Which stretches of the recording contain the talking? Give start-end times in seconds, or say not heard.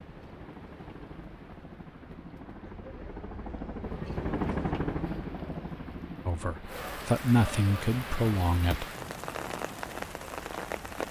6.2-8.8.